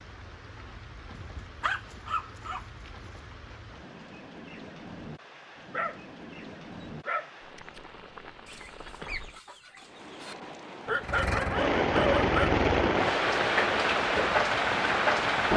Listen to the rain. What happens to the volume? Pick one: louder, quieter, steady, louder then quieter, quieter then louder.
louder.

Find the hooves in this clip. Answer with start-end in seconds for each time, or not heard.
not heard.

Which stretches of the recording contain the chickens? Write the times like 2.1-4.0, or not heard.
8.4-10.3.